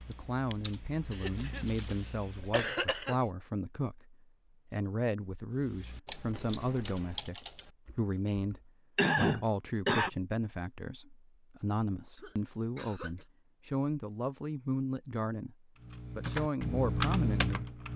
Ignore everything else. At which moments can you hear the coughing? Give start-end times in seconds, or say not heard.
1.1-3.1, 8.9-10.1, 12.2-13.2.